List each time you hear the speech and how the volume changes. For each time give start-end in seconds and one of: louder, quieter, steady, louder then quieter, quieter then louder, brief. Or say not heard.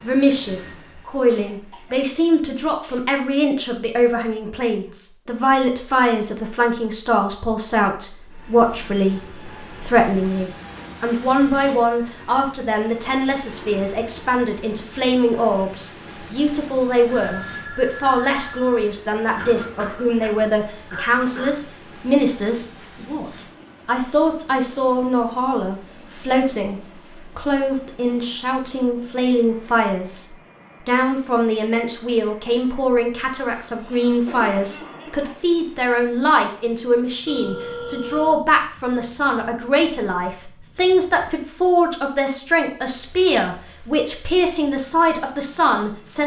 0.0-46.2 steady.